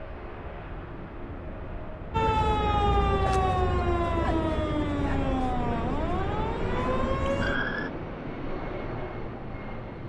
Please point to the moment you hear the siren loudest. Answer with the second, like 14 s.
3 s.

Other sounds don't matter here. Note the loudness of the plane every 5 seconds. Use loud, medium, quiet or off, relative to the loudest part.
medium, loud.